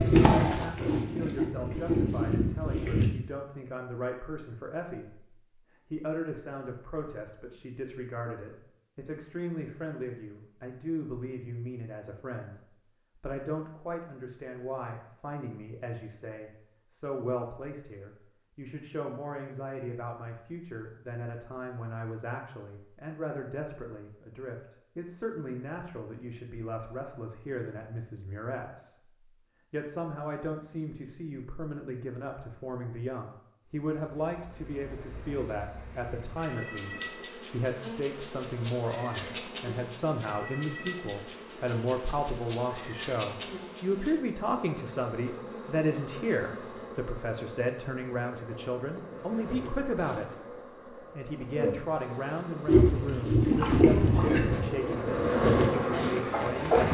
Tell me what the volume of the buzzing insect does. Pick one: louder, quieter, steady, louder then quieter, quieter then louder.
louder.